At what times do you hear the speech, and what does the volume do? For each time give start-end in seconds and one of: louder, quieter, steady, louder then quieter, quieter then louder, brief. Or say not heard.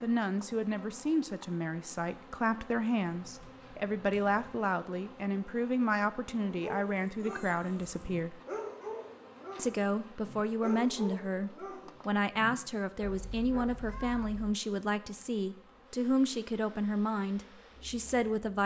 0.0-8.4 steady
9.6-18.6 steady.